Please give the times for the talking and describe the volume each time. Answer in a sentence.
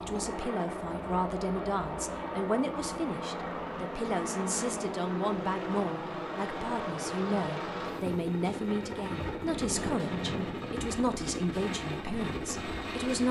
The talking can be heard from 0.0 to 13.2 s, at a steady volume.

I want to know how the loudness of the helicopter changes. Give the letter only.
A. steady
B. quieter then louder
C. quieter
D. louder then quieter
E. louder
A.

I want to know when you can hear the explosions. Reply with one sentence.
The explosions can be heard from 9.8 to 10.8 s.